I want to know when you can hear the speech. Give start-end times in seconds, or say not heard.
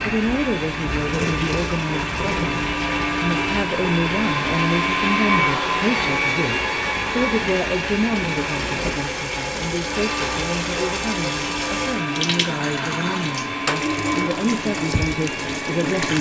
0.0-16.1.